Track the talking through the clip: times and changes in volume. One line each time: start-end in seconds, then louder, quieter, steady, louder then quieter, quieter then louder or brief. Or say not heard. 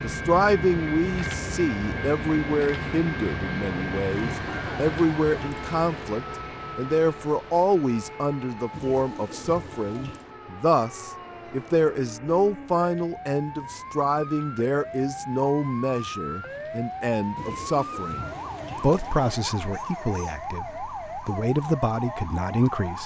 0.0-23.0 steady.